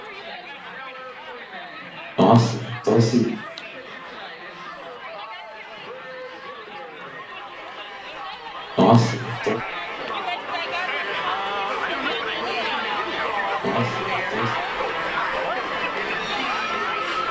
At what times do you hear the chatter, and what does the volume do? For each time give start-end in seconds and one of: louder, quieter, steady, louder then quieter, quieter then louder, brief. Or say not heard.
0.0-17.2 louder.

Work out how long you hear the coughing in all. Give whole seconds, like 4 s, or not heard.
3 s.